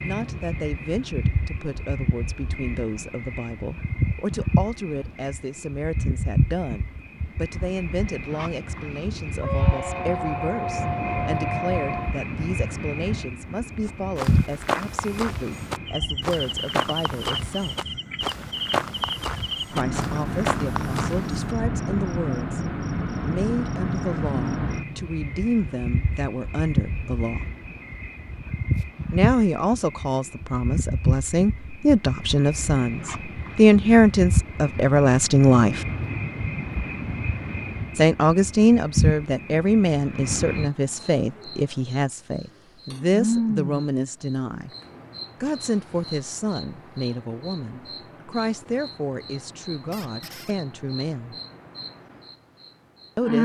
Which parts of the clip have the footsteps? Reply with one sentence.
You can hear the footsteps from 13.8 to 21.6 s.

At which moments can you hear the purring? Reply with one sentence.
You can't hear the purring here.